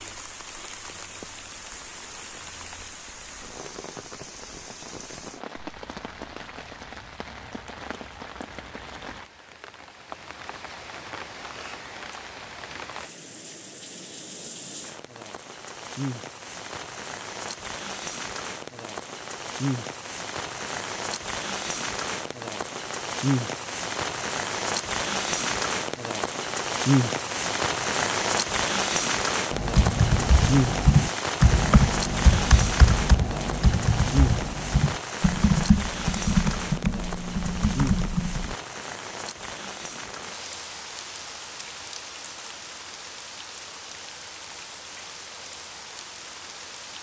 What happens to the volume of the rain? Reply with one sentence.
The volume of the rain goes up, then down.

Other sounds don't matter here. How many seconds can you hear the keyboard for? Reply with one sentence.
The keyboard can be heard for 9 seconds in total.